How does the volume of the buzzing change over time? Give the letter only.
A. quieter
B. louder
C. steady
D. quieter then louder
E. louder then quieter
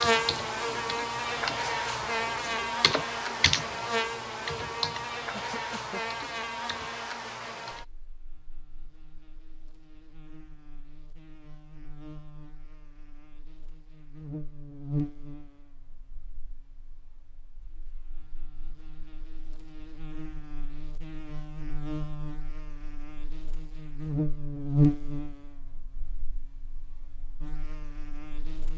D.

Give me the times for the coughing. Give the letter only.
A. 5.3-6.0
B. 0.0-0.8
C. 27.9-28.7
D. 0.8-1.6
A.